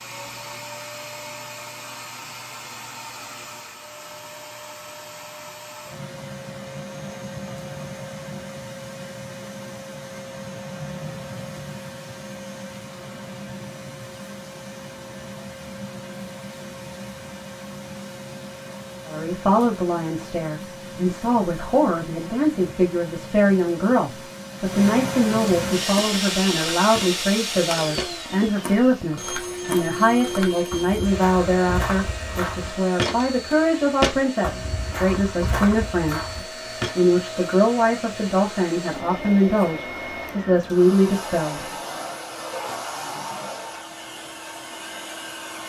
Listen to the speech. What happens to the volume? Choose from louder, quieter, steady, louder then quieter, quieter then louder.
steady.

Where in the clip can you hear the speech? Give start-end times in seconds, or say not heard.
19.1-41.7.